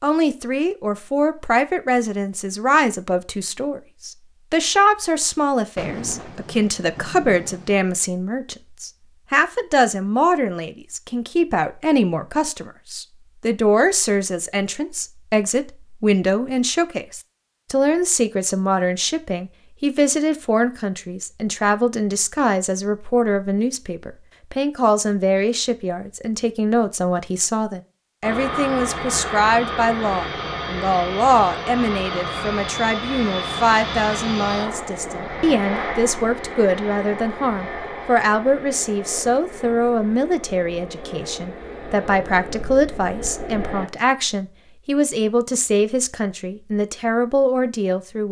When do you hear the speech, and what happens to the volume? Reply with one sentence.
The speech can be heard from 0.0 to 48.2 s, at a steady volume.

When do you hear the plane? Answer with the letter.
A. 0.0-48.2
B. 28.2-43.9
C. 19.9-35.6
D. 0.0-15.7
B.